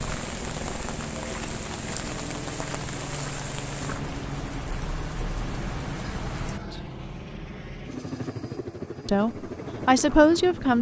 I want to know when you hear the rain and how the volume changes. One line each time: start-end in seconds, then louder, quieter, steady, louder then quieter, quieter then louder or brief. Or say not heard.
0.0-6.6 steady.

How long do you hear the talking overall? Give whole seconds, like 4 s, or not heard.
2 s.